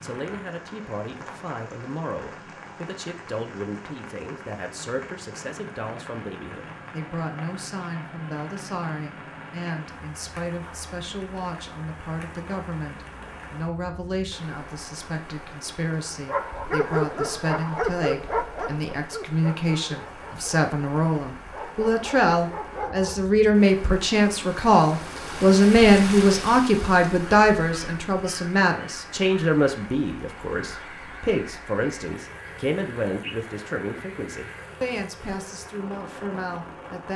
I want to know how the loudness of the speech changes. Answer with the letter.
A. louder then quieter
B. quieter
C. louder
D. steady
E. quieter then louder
A.